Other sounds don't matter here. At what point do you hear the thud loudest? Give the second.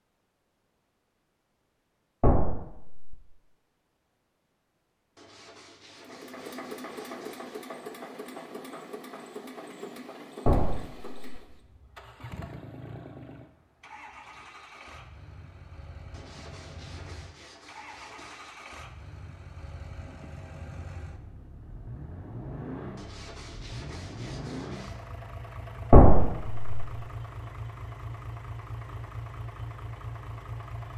26 s.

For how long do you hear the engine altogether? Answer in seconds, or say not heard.
25 s.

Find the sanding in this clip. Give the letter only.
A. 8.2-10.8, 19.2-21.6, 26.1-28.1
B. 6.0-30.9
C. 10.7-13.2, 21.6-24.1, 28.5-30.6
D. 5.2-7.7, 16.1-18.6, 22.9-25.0
D.